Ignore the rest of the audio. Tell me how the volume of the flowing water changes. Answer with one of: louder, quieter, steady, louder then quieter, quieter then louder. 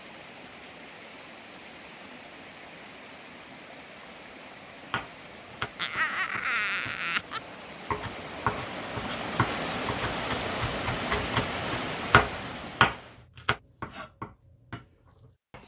louder.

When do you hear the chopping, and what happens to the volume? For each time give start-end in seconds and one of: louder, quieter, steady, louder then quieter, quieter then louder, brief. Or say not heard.
4.9-15.6 louder then quieter.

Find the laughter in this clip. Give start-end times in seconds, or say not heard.
5.8-7.4.